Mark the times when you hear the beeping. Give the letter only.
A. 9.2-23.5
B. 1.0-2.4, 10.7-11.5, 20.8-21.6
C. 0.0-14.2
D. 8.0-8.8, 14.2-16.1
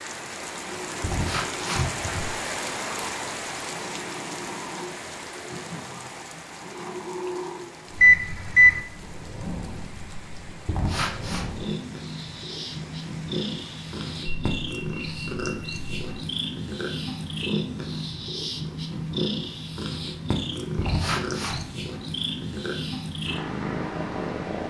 D.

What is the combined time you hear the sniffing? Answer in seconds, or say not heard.
3 s.